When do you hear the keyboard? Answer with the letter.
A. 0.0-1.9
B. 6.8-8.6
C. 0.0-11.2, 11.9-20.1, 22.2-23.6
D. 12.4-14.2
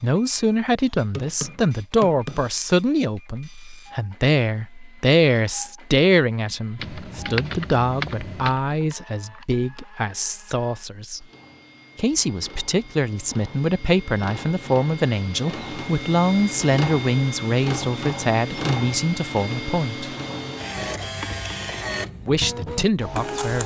B.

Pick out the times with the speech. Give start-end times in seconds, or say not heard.
0.0-11.2, 11.9-20.1, 22.2-23.6.